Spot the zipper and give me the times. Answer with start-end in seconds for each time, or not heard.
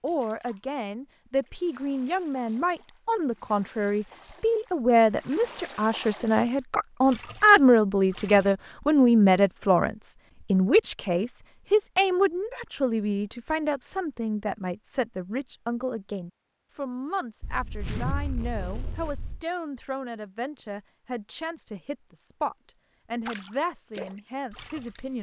17.4-19.4.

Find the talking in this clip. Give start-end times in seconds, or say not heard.
0.0-25.1.